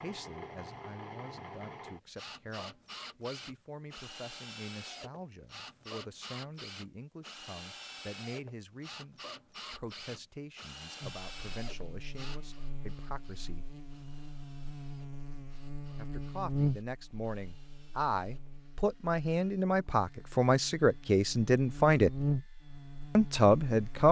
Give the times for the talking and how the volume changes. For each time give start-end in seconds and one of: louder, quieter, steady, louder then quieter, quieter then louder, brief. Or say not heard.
0.0-13.7 steady
15.9-22.1 louder
23.1-24.0 brief.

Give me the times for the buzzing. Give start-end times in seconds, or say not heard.
11.0-24.0.